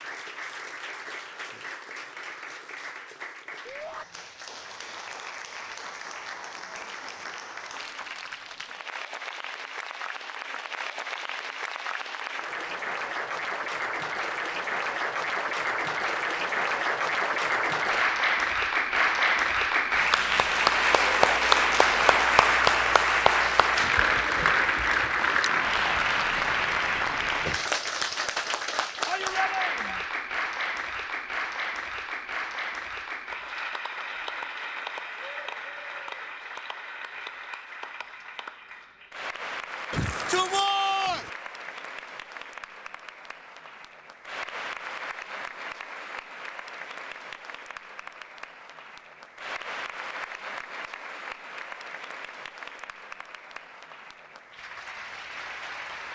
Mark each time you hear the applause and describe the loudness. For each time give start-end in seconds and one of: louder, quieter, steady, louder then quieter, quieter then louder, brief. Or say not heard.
0.0-56.0 louder then quieter.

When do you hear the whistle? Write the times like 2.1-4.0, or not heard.
not heard.